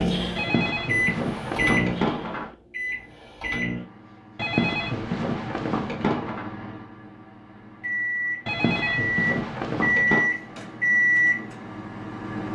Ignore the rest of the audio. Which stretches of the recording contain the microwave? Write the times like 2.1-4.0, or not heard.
0.0-12.5.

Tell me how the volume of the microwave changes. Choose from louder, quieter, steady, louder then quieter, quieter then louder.
quieter then louder.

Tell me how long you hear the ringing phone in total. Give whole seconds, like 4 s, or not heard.
6 s.